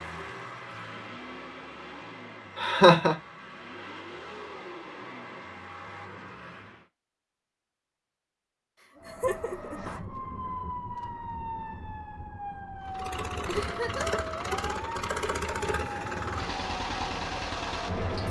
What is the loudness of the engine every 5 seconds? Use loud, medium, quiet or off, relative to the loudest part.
medium, medium, loud, loud.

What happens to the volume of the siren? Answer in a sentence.
The volume of the siren stays about the same.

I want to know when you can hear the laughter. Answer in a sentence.
The laughter can be heard from 2.5 to 3.1 s, from 8.8 to 10.1 s and from 13.6 to 14.2 s.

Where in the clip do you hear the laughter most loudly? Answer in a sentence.
The loudest moment of the laughter is at 3 seconds.